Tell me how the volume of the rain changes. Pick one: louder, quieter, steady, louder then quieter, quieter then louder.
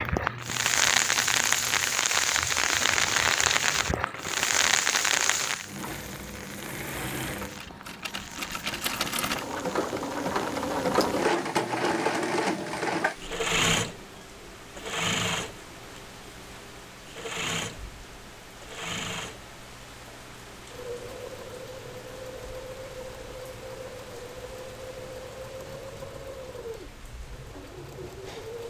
quieter.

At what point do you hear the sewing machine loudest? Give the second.
11 s.